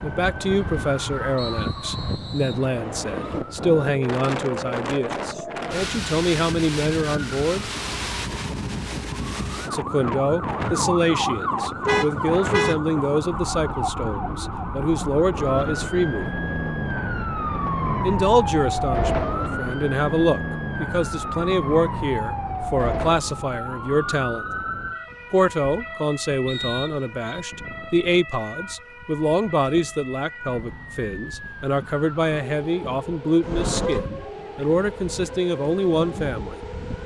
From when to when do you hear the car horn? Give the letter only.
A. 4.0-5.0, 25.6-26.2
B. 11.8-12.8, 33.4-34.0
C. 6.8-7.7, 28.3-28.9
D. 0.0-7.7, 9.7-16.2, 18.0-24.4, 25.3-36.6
B.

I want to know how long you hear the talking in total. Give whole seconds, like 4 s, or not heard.
32 s.